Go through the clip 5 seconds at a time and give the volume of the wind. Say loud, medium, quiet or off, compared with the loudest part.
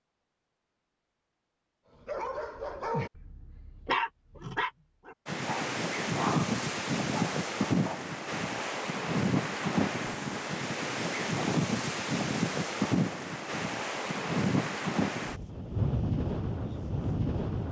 off, loud, loud, loud.